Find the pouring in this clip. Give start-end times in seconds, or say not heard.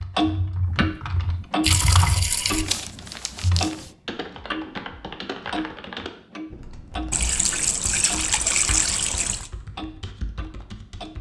0.6-2.6, 7.1-9.5.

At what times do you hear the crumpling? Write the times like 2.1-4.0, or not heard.
2.3-3.9.